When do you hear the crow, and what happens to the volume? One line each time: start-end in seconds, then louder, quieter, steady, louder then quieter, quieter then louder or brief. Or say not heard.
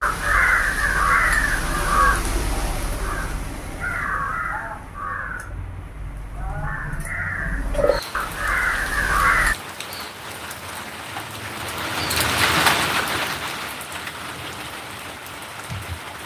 0.0-9.6 quieter then louder.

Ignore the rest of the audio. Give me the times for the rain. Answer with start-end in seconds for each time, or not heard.
7.8-16.2.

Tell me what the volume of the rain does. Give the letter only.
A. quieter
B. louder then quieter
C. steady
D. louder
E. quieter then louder
B.